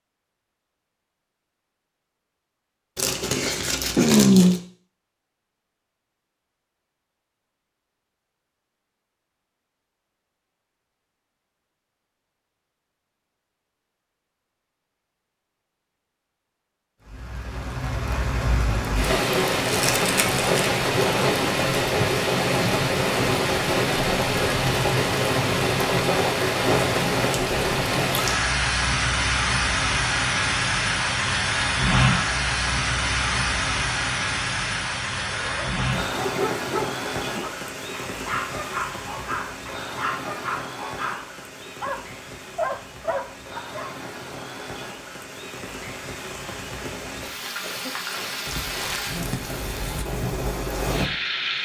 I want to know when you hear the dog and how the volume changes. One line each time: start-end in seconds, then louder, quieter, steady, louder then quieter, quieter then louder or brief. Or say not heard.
35.0-44.0 steady.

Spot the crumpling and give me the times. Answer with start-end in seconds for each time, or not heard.
3.0-4.6, 19.6-20.4, 48.5-49.2.